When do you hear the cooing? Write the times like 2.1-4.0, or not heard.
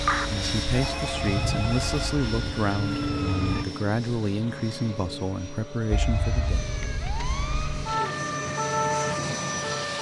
not heard.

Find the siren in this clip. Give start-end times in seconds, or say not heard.
0.0-3.6, 5.9-9.9.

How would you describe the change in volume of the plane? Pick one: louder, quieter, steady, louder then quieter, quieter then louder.
quieter then louder.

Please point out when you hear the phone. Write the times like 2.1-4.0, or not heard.
0.7-2.1, 6.0-6.7.